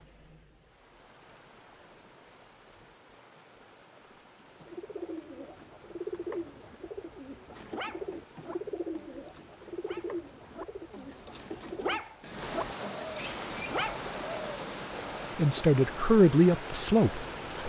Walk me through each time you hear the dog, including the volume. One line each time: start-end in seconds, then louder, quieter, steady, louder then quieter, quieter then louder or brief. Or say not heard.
7.5-14.1 louder.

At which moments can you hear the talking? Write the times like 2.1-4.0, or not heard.
15.3-17.6.